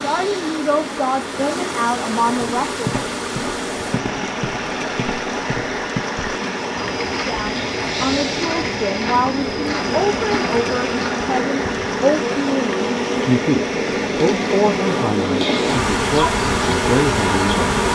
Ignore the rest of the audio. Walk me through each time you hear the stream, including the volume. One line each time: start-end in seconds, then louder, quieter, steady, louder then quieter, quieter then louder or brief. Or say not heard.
0.0-17.9 steady.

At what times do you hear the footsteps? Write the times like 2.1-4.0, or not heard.
2.2-11.3.